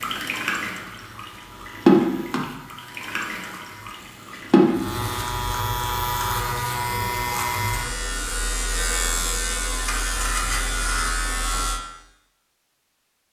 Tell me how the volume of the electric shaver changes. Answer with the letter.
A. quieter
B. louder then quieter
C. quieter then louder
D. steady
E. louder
E.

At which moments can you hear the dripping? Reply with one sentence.
You can hear the dripping from 0.0 to 11.2 s.